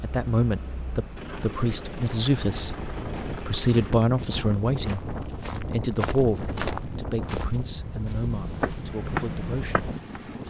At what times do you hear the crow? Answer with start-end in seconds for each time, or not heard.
not heard.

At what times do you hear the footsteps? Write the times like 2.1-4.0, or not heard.
3.0-10.2.